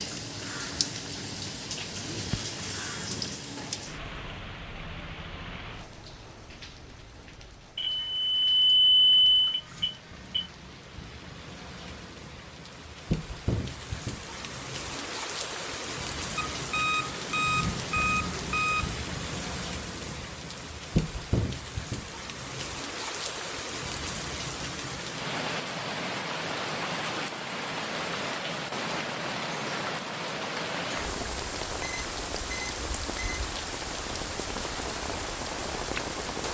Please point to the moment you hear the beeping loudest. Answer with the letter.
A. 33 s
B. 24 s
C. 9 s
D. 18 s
C.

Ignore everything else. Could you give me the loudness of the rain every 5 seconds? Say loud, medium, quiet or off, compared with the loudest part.
loud, quiet, medium, loud, loud, loud, loud, loud.